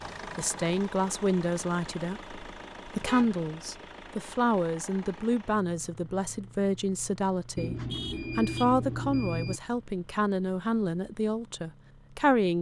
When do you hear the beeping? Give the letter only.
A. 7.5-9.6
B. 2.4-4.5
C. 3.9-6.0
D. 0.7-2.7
A.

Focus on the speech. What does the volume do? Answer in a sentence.
The volume of the speech stays about the same.